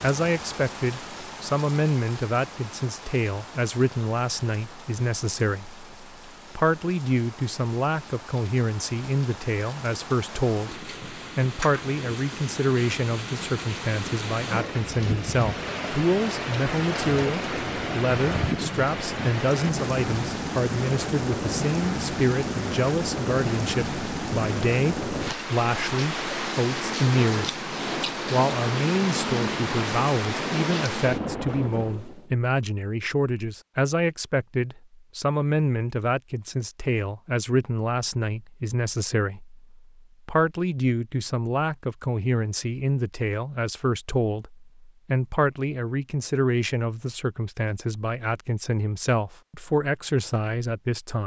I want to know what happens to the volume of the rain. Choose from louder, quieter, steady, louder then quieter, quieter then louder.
louder.